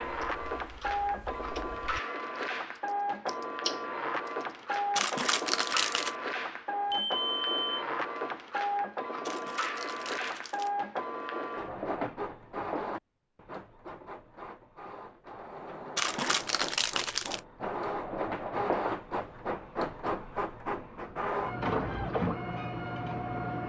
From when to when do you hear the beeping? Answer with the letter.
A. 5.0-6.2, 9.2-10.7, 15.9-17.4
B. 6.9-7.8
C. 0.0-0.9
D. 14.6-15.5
B.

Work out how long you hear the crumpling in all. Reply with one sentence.
You can hear the crumpling for 4 seconds altogether.